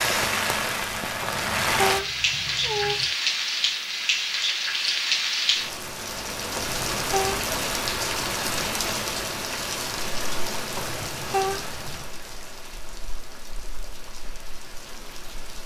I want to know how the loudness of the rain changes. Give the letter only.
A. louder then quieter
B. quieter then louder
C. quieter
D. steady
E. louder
C.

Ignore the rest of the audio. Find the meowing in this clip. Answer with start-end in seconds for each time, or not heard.
1.2-3.1, 6.5-7.5, 10.8-12.1.